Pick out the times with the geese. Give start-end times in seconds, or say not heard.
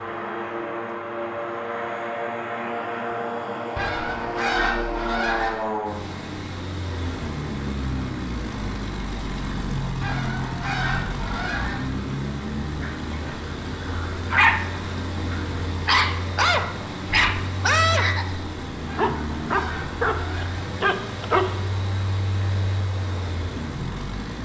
3.8-5.7, 10.0-11.9, 18.9-20.6.